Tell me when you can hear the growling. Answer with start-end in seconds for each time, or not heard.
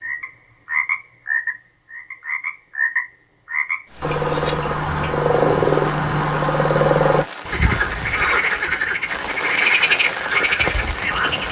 not heard.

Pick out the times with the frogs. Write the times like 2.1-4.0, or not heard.
0.0-11.4.